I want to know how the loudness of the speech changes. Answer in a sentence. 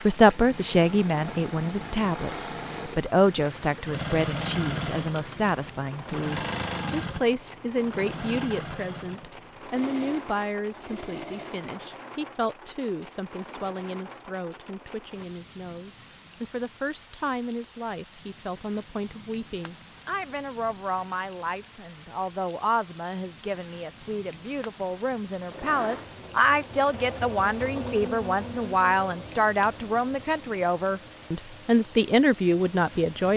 The loudness of the speech goes down, then up.